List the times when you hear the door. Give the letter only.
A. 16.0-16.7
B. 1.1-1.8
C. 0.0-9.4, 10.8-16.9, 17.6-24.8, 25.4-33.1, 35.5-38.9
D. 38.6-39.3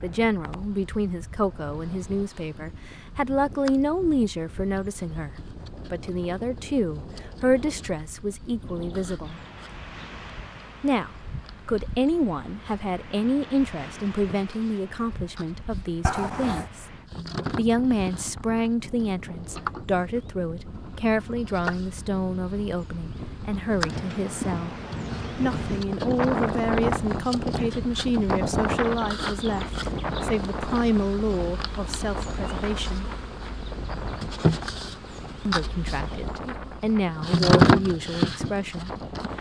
A.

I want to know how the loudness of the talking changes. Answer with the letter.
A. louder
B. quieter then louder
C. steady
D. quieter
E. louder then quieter
C.